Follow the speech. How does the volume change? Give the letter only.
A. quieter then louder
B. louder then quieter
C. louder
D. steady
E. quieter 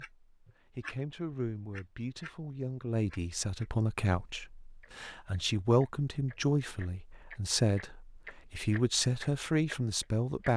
C.